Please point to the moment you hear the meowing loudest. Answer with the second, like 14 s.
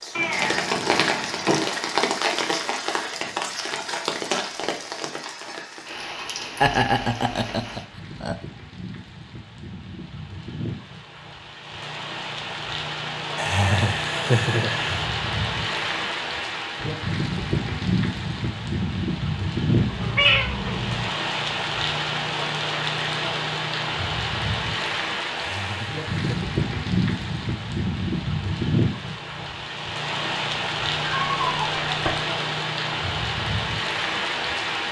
20 s.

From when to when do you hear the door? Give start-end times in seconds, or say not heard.
not heard.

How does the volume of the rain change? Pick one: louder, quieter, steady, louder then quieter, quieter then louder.
quieter then louder.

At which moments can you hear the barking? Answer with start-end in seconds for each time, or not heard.
not heard.